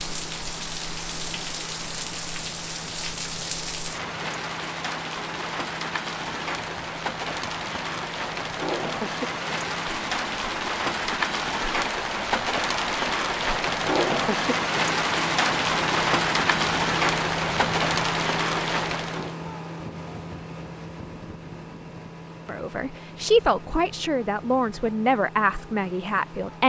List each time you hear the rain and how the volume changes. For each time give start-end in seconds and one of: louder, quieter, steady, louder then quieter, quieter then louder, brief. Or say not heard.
0.0-19.4 louder.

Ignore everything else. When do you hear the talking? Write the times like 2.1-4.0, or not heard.
22.4-26.6.